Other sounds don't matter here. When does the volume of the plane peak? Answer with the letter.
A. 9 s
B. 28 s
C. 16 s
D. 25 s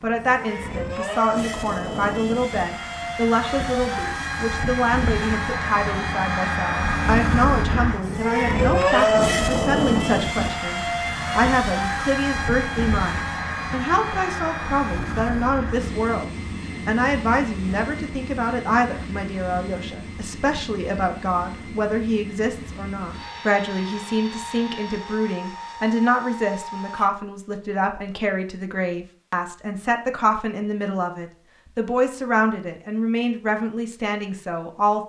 A.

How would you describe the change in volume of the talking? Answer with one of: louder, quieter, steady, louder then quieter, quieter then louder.
steady.